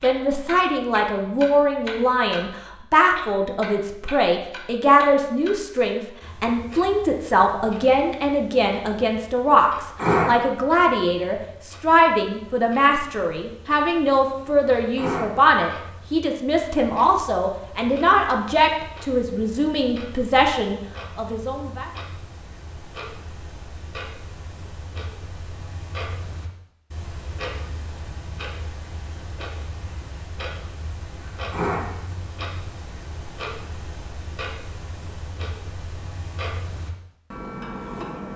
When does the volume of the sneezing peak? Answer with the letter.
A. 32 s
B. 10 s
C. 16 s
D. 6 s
B.